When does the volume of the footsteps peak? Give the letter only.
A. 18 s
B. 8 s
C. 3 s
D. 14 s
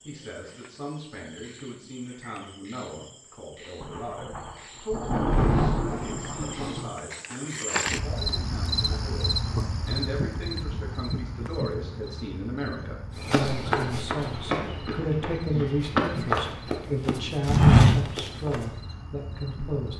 A.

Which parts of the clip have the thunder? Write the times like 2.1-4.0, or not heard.
3.8-6.9.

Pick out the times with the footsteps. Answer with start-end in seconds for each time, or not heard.
13.2-18.6.